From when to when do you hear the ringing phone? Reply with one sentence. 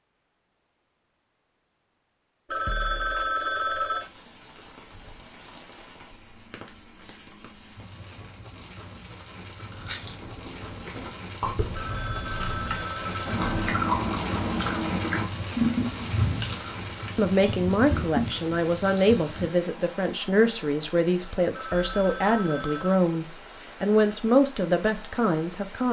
You can hear the ringing phone from 2.5 to 4.1 s, from 11.8 to 13.5 s and from 21.5 to 23.0 s.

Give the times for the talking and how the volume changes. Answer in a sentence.
You can hear the talking from 17.1 to 25.8 s, at a steady volume.